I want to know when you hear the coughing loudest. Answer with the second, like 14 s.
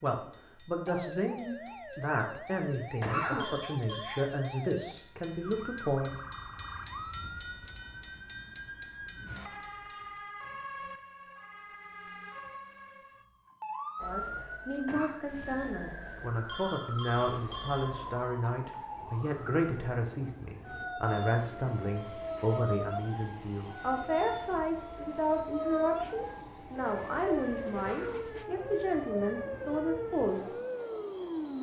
3 s.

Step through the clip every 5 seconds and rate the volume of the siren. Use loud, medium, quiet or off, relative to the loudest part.
medium, medium, medium, medium, loud, loud, loud.